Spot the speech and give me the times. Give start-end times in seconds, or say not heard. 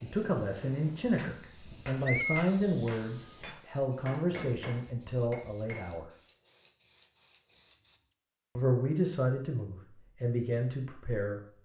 0.0-6.0, 8.6-11.6.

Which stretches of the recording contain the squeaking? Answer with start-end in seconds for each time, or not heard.
2.0-2.5, 7.5-8.2.